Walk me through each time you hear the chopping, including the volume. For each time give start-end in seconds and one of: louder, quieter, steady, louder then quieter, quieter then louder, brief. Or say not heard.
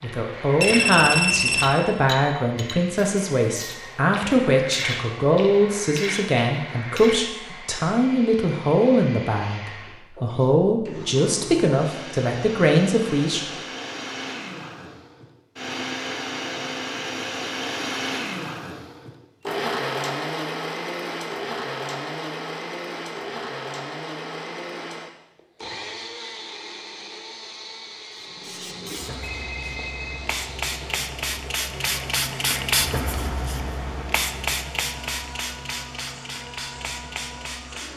not heard.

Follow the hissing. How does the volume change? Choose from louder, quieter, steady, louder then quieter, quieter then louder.
louder then quieter.